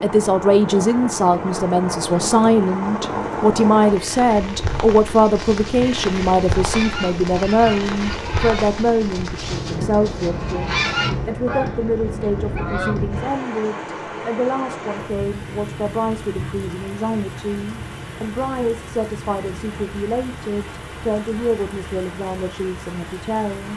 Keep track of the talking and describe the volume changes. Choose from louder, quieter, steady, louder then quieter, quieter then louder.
quieter.